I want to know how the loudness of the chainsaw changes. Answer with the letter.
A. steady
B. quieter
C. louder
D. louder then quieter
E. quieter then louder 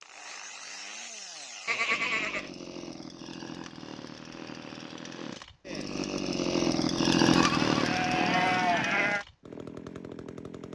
D.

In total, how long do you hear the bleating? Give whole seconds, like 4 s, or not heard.
3 s.